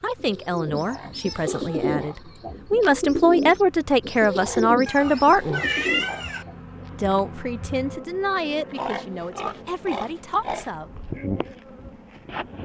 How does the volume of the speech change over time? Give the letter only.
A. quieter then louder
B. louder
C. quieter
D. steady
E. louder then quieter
E.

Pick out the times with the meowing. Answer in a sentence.
The meowing can be heard from 4.8 to 6.5 s.